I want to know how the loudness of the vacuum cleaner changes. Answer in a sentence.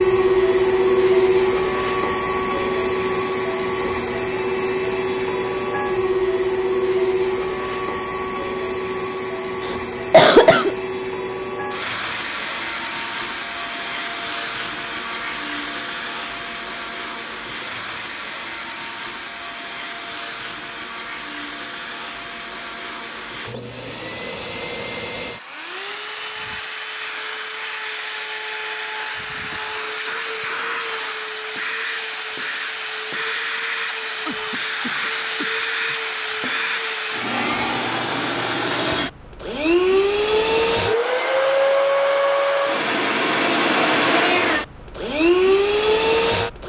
The volume of the vacuum cleaner goes down, then up.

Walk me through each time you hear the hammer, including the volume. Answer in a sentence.
The hammer can't be heard in this clip.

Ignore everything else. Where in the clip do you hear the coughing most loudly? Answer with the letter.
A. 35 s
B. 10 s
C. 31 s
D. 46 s
B.